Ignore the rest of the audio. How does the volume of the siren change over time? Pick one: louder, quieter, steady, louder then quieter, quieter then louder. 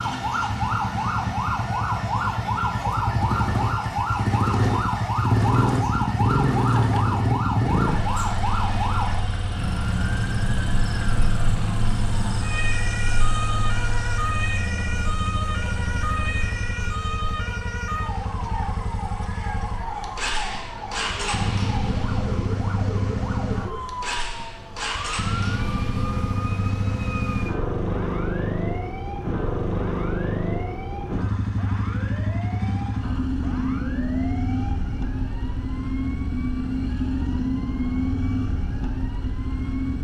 quieter.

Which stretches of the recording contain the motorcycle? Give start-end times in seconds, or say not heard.
0.0-39.9.